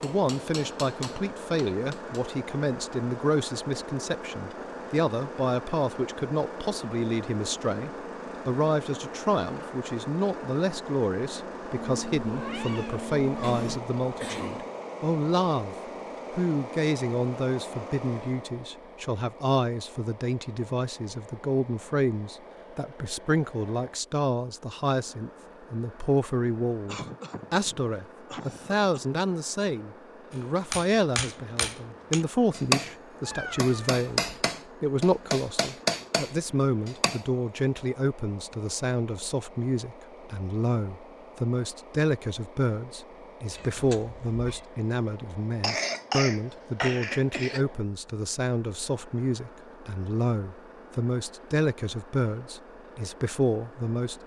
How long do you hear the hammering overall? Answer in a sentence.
You can hear the hammering for 9 seconds altogether.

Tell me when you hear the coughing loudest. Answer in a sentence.
The loudest moment of the coughing is at 46 seconds.